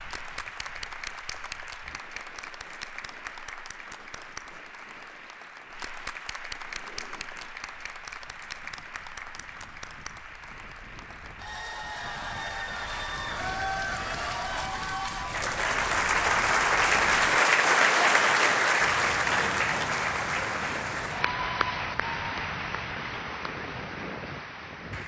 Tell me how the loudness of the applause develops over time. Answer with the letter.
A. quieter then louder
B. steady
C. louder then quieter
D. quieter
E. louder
C.